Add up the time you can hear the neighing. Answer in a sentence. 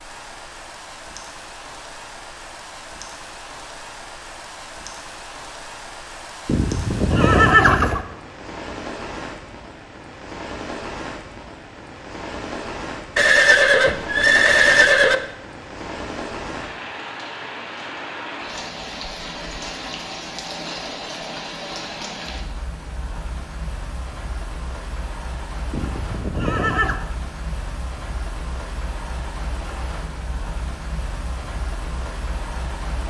You can hear the neighing for 5 seconds altogether.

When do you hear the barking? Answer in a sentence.
You can't hear the barking here.